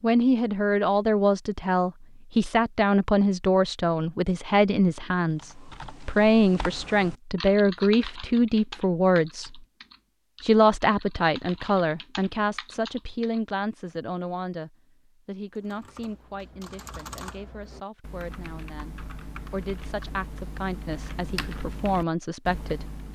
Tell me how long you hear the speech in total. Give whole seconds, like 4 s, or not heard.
22 s.